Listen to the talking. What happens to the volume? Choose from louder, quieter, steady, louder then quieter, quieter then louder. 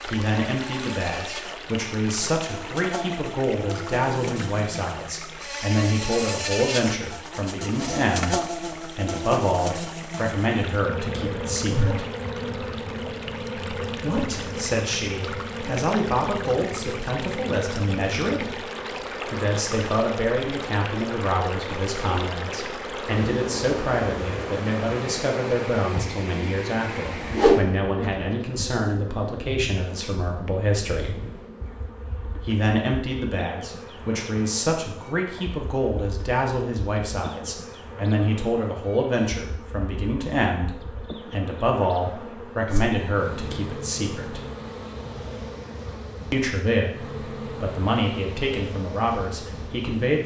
steady.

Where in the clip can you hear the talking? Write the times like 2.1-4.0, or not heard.
0.1-12.1, 14.0-18.6, 19.2-31.2, 32.4-44.4, 46.3-50.2.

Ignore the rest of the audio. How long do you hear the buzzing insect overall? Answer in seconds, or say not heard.
50 s.